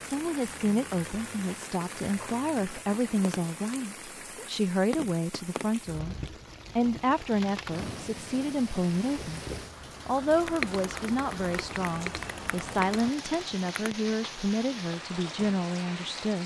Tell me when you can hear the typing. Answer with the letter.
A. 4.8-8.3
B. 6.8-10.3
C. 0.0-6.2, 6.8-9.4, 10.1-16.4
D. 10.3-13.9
D.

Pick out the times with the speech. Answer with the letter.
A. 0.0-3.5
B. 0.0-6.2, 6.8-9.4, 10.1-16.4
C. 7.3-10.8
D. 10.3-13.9
B.